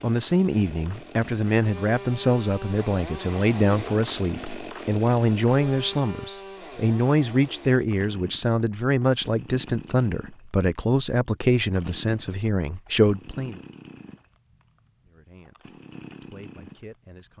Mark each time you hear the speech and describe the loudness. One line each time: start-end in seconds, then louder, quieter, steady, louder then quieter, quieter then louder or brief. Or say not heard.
0.0-13.6 steady
15.1-17.3 brief.